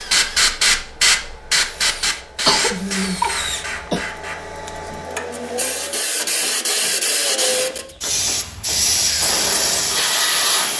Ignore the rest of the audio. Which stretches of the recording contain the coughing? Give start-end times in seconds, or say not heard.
2.5-4.0.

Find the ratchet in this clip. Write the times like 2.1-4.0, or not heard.
not heard.